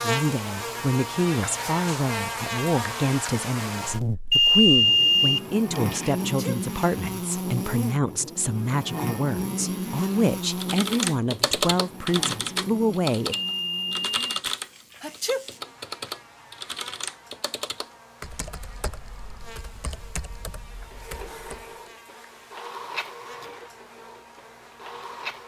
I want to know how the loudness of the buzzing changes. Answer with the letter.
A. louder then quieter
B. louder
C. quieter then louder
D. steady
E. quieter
E.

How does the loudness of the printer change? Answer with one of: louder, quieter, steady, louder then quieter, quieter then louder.
louder then quieter.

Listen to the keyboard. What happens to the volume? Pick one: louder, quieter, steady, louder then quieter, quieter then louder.
quieter.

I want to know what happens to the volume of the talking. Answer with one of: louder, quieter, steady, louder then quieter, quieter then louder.
steady.